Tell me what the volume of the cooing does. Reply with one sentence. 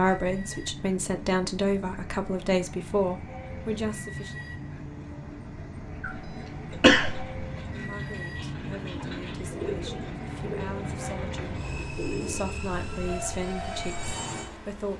The loudness of the cooing goes up.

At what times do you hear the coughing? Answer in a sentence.
The coughing can be heard from 6.0 to 7.2 s.